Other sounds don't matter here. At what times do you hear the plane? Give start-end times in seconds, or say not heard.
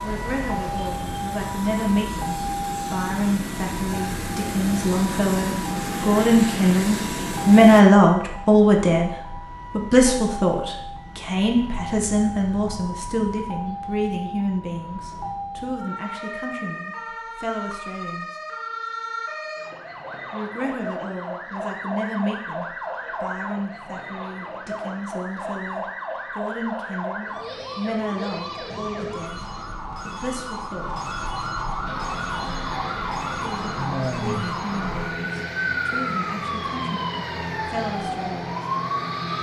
0.0-7.8, 31.9-39.3.